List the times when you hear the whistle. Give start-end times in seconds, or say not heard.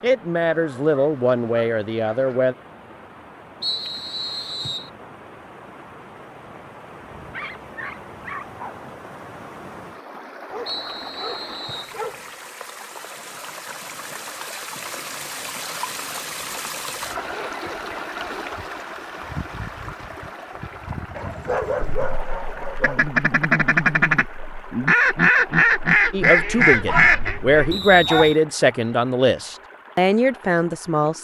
3.6-4.9, 10.7-11.9, 27.7-28.4.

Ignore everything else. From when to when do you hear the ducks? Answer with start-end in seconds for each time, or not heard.
21.8-27.8.